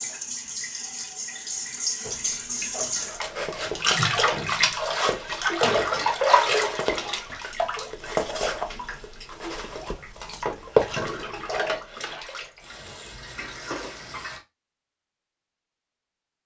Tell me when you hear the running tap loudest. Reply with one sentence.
The loudest moment of the running tap is at 6 seconds.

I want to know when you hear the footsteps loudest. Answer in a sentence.
The loudest moment of the footsteps is at 11 seconds.